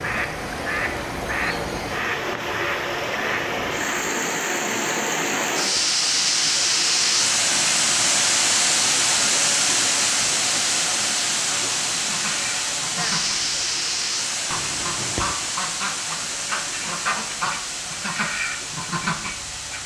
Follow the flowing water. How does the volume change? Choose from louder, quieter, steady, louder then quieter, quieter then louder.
louder then quieter.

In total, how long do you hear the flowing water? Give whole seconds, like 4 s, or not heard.
20 s.